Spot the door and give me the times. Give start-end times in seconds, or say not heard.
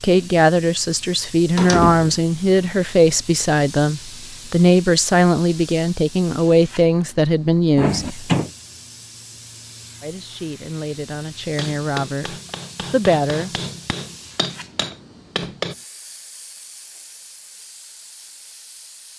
1.6-2.2, 7.8-8.5, 14.5-15.7.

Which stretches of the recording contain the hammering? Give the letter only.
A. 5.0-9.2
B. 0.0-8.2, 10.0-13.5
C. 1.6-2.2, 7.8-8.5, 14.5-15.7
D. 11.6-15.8
D.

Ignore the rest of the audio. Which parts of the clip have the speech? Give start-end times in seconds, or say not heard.
0.0-8.2, 10.0-13.5.